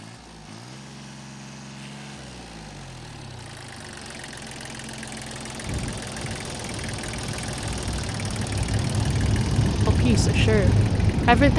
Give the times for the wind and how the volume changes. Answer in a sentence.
You can hear the wind from 5.6 to 11.5 s, getting louder.